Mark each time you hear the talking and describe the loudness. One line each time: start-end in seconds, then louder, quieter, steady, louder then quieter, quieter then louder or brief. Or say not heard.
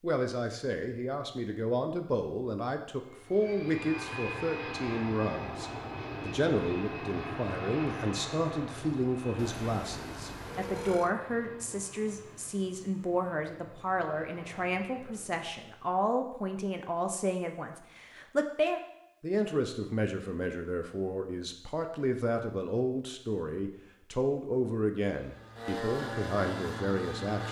0.0-27.4 steady.